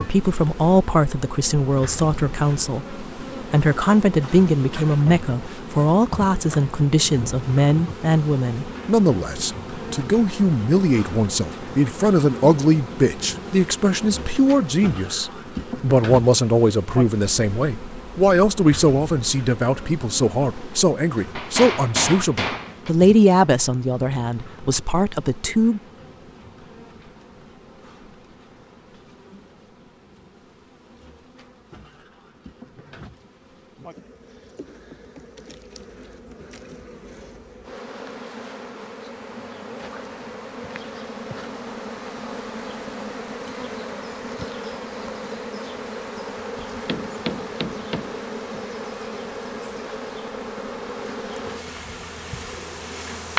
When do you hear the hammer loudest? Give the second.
22 s.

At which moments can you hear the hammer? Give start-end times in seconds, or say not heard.
21.4-22.9, 46.9-48.6.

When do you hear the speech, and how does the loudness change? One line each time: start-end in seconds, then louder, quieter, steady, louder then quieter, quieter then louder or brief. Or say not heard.
0.0-25.8 steady.